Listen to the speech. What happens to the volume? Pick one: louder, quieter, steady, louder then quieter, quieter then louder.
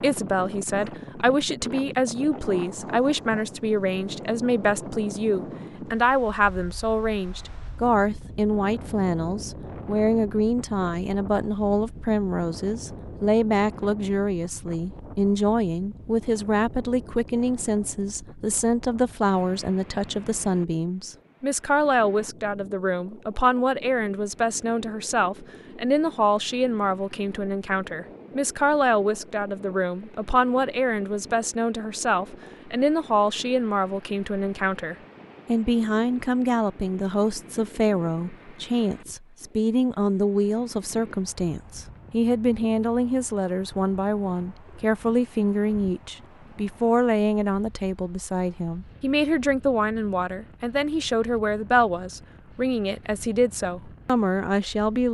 steady.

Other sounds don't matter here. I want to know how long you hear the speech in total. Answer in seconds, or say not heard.
55 s.